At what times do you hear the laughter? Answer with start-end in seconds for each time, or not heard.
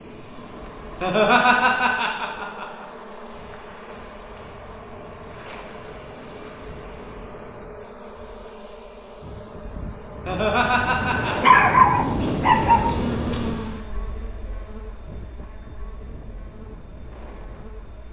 1.0-2.9, 10.2-11.5.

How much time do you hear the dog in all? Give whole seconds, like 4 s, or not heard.
2 s.